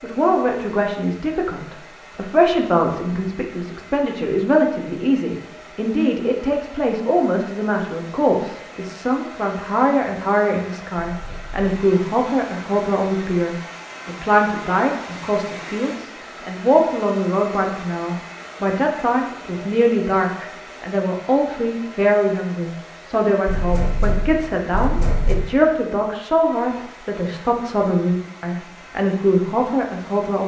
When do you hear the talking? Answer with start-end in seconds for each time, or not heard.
0.0-30.4.